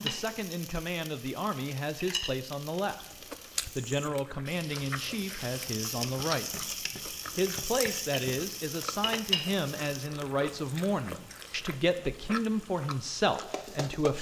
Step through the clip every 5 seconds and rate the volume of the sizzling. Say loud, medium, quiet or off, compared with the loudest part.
medium, loud, medium.